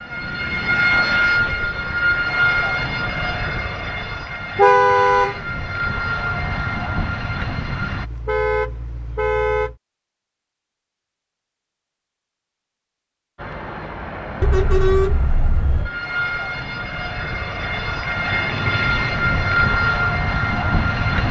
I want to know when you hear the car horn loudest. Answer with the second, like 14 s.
5 s.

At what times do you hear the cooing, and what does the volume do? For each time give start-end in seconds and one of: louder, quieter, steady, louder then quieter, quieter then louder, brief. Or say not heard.
not heard.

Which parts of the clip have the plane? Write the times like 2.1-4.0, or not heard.
0.0-8.1, 13.3-21.2.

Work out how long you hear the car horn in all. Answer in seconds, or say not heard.
4 s.